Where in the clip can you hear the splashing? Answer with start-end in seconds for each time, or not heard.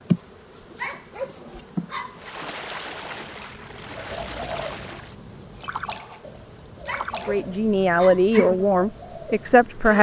2.1-7.5.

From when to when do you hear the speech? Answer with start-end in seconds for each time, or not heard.
7.2-9.9.